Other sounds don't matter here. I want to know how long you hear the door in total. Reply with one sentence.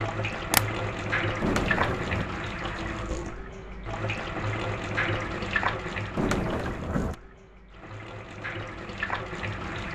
The door can be heard for 2 seconds in total.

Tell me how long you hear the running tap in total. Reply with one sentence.
The running tap can be heard for 10 seconds in total.